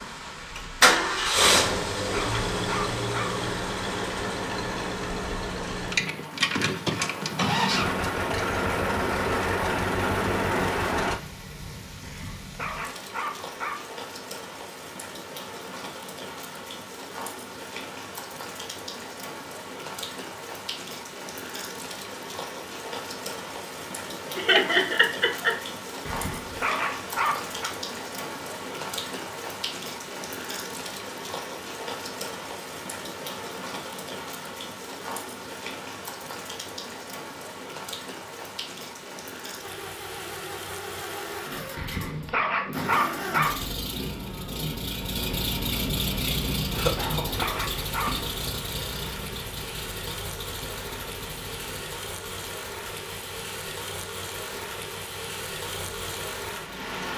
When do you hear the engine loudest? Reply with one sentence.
The volume of the engine peaks at 1 second.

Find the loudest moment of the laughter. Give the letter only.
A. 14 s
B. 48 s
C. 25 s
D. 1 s
C.